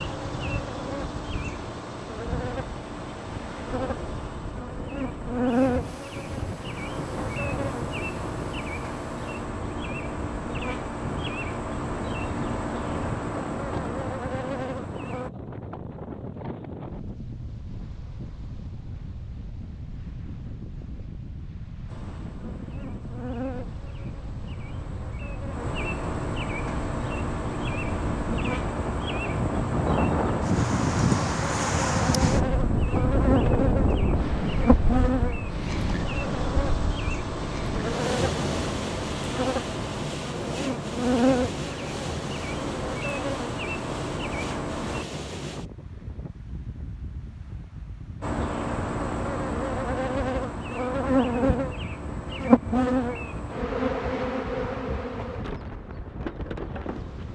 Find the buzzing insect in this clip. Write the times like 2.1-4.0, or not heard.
0.0-15.3, 21.9-45.0, 48.2-57.3.